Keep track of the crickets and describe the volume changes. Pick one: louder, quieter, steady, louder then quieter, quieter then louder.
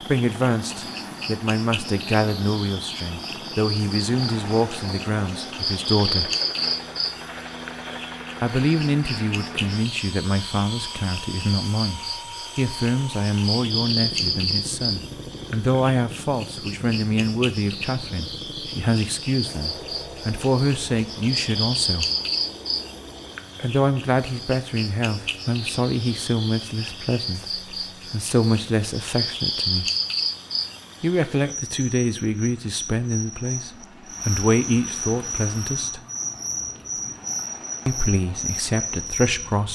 steady.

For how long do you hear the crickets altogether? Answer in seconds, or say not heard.
40 s.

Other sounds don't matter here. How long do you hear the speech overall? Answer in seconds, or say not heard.
33 s.